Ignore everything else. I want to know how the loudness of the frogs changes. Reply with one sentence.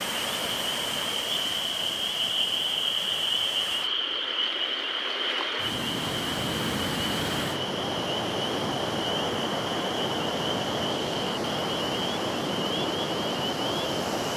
The volume of the frogs goes down.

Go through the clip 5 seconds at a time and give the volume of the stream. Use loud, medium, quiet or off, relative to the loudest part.
medium, loud, loud.